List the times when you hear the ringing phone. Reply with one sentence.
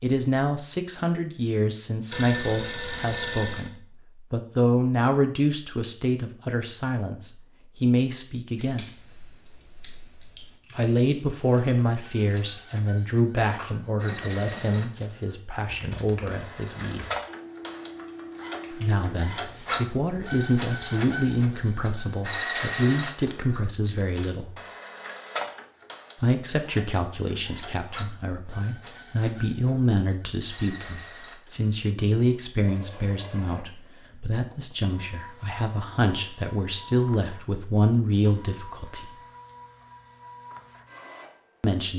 The ringing phone can be heard from 2.1 to 3.7 s.